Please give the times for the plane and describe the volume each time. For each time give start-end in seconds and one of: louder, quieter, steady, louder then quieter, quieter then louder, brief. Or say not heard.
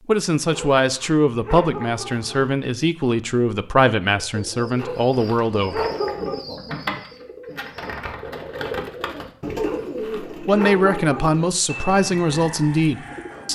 not heard.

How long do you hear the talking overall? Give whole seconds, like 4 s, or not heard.
9 s.